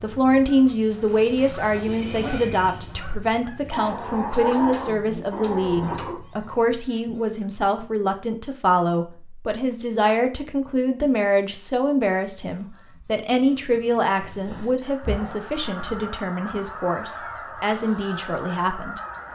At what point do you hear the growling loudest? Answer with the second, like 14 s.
5 s.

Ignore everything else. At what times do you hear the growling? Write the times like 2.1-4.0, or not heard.
3.7-6.2, 14.2-16.1.